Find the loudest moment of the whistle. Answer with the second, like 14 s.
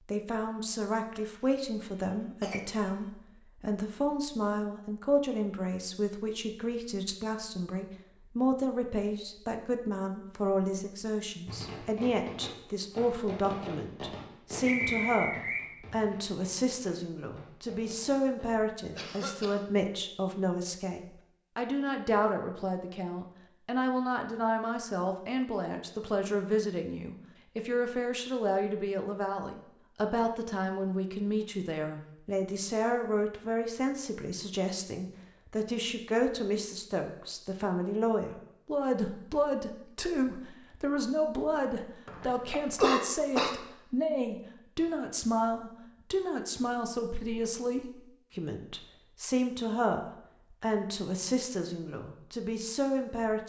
15 s.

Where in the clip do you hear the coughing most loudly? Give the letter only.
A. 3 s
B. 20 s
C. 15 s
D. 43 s
D.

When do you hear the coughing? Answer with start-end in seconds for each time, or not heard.
2.4-2.9, 18.9-19.8, 42.2-43.5.